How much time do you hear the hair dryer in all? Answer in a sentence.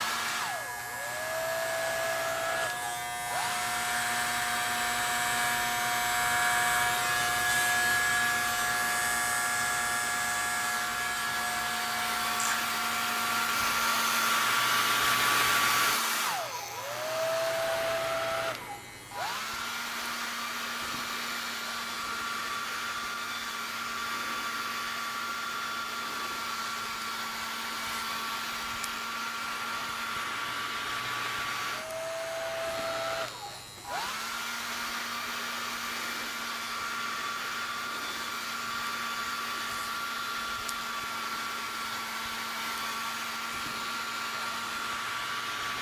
You can hear the hair dryer for 46 seconds altogether.